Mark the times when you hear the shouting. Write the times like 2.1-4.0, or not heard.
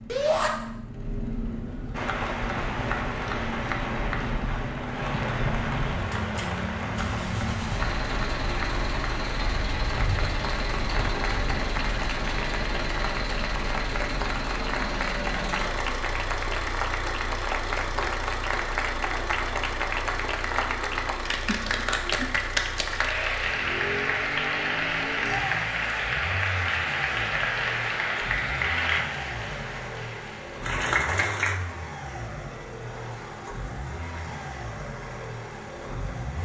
0.1-0.5, 25.2-25.8.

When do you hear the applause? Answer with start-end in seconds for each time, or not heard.
1.9-31.6.